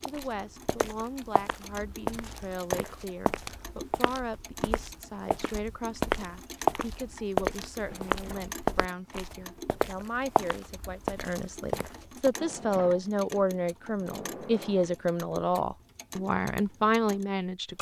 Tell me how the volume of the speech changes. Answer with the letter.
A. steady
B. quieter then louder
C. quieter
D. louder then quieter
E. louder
E.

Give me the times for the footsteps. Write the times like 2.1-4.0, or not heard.
0.0-12.3.